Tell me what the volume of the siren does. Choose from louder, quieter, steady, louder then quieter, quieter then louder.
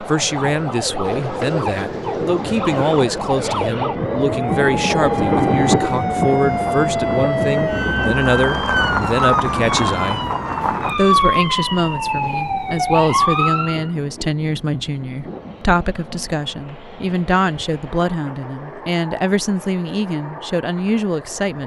louder.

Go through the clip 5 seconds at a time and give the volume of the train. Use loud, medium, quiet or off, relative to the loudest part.
medium, loud, quiet, quiet, quiet.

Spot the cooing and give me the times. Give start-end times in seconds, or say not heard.
1.1-3.0.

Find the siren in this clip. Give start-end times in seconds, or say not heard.
0.0-13.9.